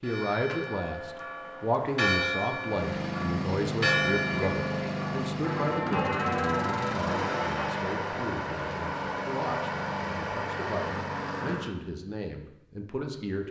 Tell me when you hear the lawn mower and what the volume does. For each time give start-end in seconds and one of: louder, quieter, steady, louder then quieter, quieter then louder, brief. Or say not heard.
2.6-11.8 steady.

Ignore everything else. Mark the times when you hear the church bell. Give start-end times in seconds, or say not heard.
0.0-7.9.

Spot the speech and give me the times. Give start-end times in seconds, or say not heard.
0.0-13.4.